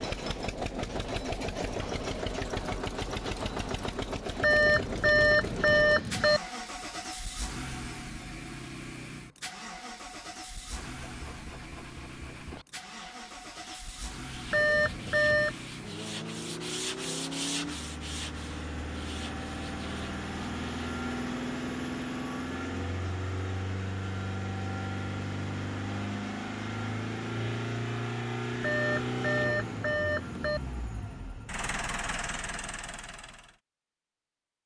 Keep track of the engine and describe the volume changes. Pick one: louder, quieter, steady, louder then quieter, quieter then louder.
quieter then louder.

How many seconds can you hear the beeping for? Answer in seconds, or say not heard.
5 s.